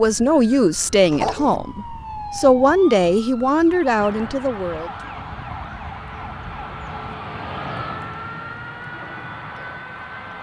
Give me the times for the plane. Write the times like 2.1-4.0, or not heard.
4.0-10.3.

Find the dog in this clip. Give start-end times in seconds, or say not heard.
1.1-1.6.